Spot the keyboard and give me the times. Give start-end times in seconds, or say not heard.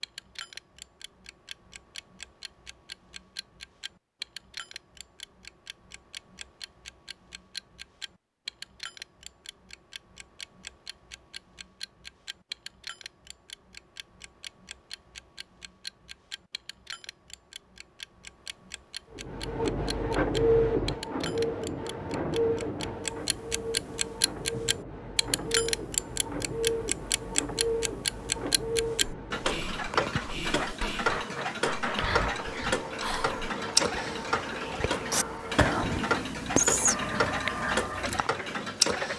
not heard.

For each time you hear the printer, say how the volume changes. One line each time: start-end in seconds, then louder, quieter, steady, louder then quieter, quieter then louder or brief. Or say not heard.
19.1-39.1 quieter.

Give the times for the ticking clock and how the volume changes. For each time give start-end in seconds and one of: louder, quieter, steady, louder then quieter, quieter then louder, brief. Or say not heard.
0.0-39.1 louder.